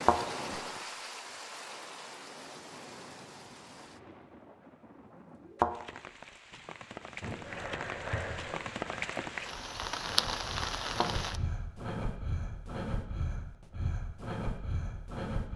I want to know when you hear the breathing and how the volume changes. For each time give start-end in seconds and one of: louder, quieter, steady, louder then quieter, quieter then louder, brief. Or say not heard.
7.2-15.5 quieter then louder.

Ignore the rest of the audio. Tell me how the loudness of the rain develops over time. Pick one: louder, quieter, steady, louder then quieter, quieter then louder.
quieter then louder.